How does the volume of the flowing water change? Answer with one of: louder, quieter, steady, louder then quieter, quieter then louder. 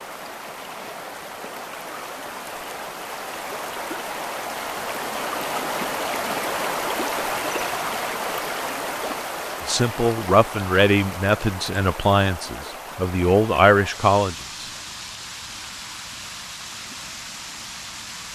louder then quieter.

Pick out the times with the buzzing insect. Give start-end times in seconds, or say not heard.
not heard.